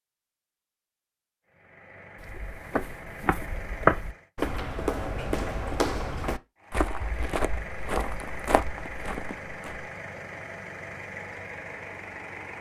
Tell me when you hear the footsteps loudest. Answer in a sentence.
The volume of the footsteps peaks at 4 seconds.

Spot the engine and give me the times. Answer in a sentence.
The engine can be heard from 1.4 to 4.3 s and from 6.5 to 12.5 s.